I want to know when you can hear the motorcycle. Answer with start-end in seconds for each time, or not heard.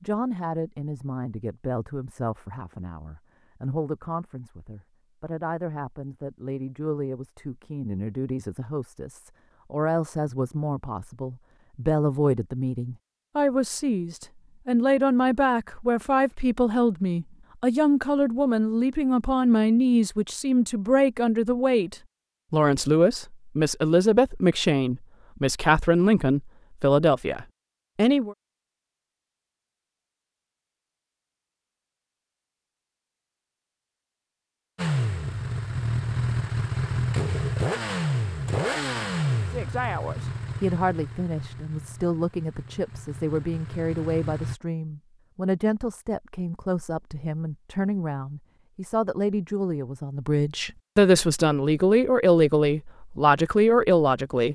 34.8-44.5.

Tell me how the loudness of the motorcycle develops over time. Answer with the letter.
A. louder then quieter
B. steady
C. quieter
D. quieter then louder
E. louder
C.